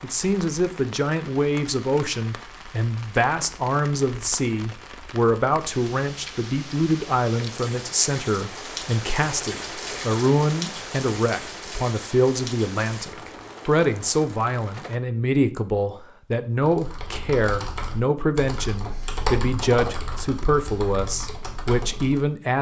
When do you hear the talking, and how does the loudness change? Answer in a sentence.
You can hear the talking from 0.0 to 22.5 s, at a steady volume.